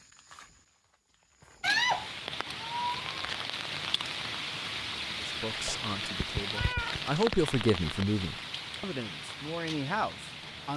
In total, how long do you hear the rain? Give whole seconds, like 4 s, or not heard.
9 s.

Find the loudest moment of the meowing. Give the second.
2 s.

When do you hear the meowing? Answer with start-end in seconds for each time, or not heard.
1.6-3.1, 5.7-7.3.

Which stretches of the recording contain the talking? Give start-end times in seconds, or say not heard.
5.2-10.7.